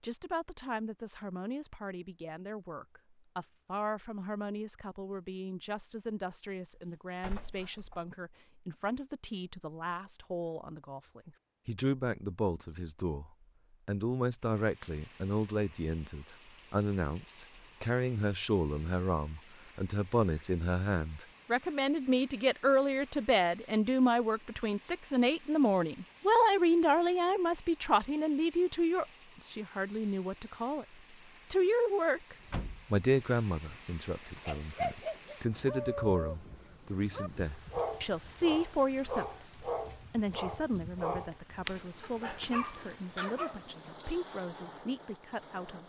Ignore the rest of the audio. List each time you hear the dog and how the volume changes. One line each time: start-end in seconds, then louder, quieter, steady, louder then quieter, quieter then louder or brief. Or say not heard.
34.5-44.0 steady.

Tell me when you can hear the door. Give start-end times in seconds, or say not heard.
6.8-8.1, 32.4-33.0.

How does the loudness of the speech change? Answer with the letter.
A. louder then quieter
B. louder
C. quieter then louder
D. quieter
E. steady
A.